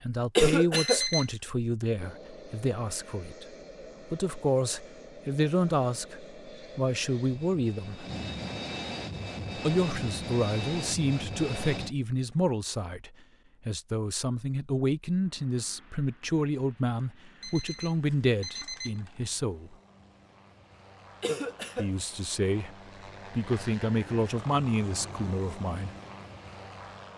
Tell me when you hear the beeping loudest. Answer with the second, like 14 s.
1 s.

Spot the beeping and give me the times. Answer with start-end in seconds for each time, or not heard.
0.8-1.3, 17.4-19.2.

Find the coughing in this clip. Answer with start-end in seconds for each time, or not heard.
0.3-1.0, 21.2-21.9.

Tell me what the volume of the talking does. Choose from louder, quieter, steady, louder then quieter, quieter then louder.
steady.